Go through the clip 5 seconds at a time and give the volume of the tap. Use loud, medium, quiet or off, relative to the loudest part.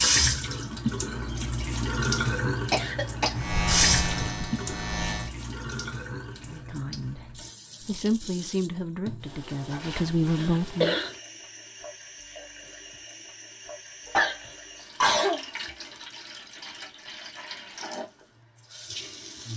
loud, quiet, quiet, quiet.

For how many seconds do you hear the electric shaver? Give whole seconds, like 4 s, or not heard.
2 s.